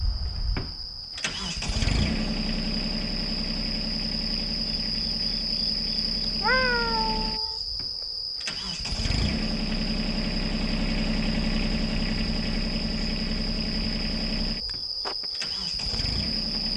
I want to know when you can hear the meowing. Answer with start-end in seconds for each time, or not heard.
6.2-7.6.